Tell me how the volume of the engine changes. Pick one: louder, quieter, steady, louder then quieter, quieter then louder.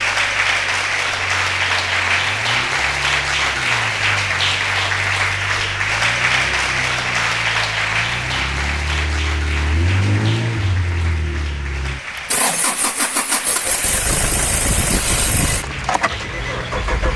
louder.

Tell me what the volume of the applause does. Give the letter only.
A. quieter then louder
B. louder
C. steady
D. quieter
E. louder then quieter
D.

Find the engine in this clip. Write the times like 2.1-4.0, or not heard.
0.0-17.1.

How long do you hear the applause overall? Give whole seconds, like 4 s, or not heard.
17 s.